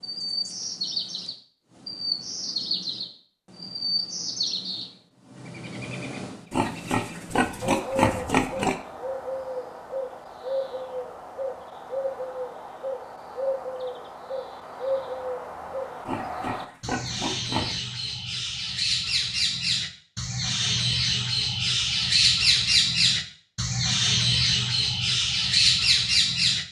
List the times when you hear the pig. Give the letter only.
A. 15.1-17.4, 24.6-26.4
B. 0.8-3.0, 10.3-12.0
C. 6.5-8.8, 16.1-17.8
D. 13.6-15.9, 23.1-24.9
C.